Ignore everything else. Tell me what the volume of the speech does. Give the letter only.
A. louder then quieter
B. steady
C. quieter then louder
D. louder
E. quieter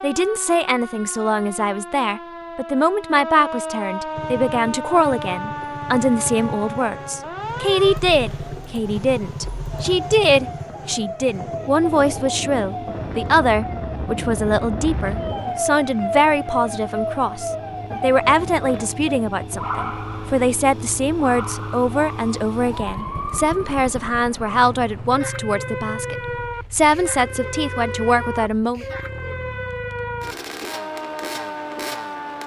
B.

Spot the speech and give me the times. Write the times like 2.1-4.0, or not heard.
0.0-28.9.